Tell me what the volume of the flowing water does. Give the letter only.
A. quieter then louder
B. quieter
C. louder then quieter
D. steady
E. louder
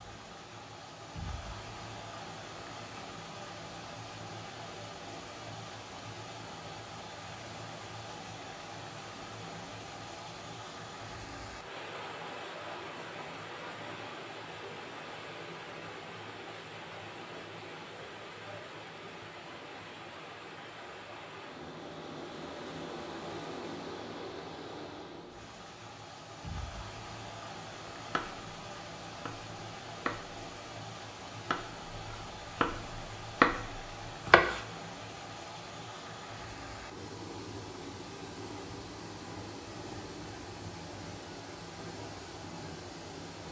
D.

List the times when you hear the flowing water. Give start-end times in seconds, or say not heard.
0.0-43.4.